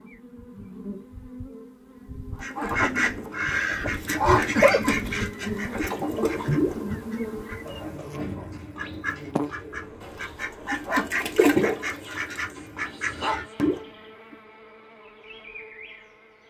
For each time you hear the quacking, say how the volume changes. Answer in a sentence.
You can hear the quacking from 2.4 to 13.8 s, getting quieter then louder.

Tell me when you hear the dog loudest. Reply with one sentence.
The loudest moment of the dog is at 5 seconds.